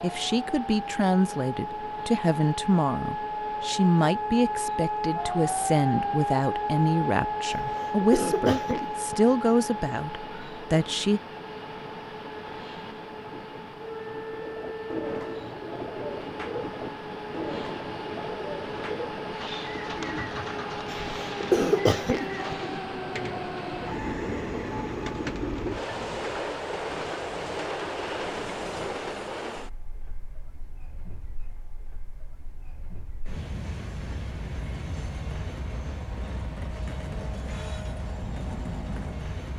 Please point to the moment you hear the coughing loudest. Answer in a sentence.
The loudest moment of the coughing is at 22 seconds.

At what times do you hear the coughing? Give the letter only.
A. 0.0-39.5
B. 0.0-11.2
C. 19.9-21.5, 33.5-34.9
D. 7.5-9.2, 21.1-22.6
D.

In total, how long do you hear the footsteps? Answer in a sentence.
You can't hear the footsteps here.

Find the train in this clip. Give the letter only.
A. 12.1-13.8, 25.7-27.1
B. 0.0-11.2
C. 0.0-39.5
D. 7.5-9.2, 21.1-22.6
C.